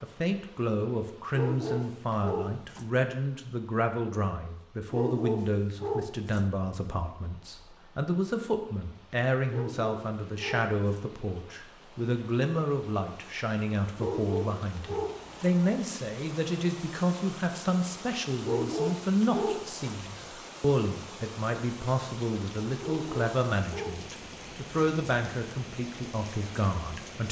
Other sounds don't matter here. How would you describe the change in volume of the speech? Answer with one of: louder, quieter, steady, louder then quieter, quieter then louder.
steady.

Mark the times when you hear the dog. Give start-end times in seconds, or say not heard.
1.3-2.9, 4.9-6.5, 9.5-11.1, 13.9-15.5, 18.4-19.9, 22.8-24.1.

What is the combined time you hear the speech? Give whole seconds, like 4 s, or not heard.
27 s.